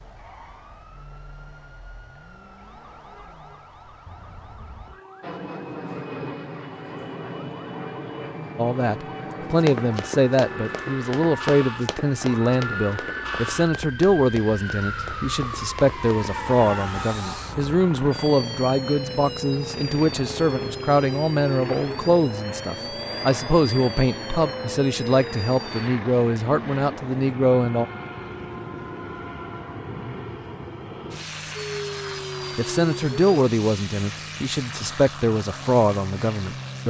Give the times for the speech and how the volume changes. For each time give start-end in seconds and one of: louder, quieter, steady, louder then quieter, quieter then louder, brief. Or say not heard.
8.6-27.9 steady
32.5-36.8 quieter then louder.